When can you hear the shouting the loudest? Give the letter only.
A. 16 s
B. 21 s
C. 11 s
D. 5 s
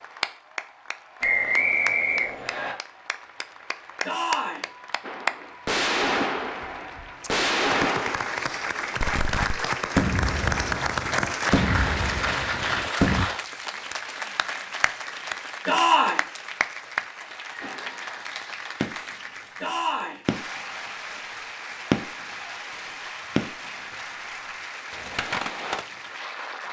A.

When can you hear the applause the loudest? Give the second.
11 s.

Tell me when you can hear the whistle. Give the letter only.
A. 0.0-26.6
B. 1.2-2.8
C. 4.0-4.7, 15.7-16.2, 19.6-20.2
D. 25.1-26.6
B.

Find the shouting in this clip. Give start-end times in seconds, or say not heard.
4.0-4.7, 15.7-16.2, 19.6-20.2.